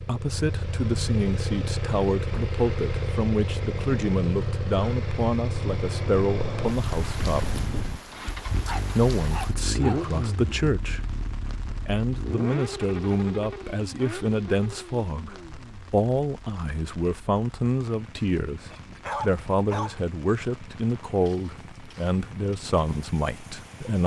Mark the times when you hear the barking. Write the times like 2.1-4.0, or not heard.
8.7-10.1, 18.1-19.9.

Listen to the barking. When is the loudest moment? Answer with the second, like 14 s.
19 s.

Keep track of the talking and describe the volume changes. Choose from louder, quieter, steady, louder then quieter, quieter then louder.
steady.